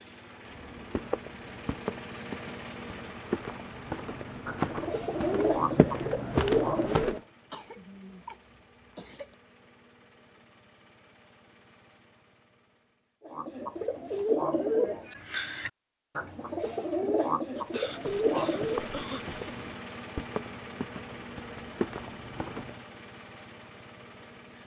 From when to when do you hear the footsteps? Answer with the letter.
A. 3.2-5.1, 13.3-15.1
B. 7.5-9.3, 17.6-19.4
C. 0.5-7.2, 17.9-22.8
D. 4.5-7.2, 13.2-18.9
C.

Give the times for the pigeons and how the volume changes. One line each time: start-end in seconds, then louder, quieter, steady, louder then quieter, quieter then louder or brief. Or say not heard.
4.5-7.2 brief
13.2-18.9 quieter then louder.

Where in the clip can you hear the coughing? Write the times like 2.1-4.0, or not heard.
7.5-9.3, 17.6-19.4.